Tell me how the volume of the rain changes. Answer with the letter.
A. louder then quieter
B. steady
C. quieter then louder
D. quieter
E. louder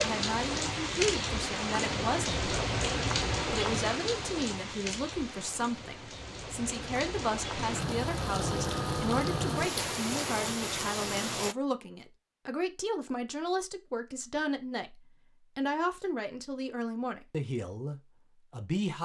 C.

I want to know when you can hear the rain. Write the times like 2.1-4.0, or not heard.
0.0-11.6.